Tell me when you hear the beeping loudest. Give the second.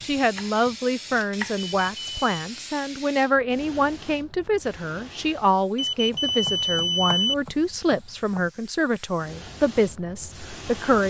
7 s.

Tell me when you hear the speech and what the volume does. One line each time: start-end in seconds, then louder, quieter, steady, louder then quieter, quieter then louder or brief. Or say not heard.
0.0-11.0 steady.